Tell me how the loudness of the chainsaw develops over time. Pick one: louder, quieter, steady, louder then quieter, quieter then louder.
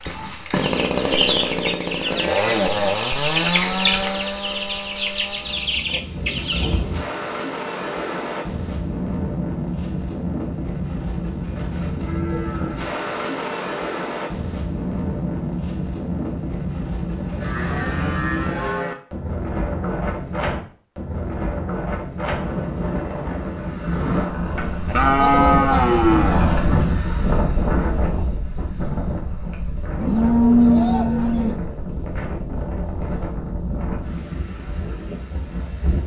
quieter.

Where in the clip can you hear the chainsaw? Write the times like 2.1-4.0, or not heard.
0.0-5.9.